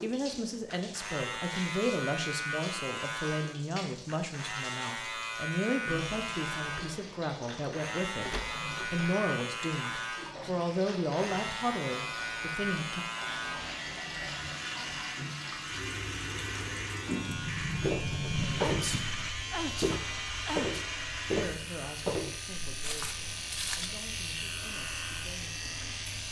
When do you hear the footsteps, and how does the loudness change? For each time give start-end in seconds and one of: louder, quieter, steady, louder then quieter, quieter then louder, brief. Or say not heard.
17.8-19.0 brief
19.6-23.9 quieter.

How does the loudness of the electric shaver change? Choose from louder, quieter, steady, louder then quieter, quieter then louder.
steady.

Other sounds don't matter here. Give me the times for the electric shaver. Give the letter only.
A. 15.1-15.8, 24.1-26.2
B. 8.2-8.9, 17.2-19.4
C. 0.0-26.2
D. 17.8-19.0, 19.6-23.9
C.